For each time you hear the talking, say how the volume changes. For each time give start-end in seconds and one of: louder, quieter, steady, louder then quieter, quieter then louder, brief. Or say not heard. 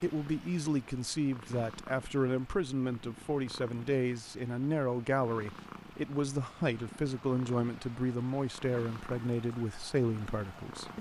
0.0-10.9 steady.